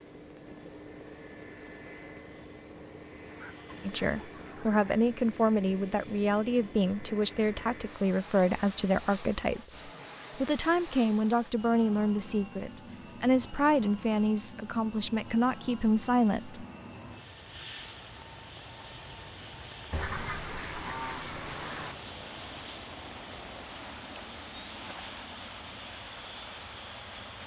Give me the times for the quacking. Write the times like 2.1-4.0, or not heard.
3.2-5.0, 19.9-21.9.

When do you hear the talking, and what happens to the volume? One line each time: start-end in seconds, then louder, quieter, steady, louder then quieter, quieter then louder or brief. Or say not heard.
3.8-16.6 steady.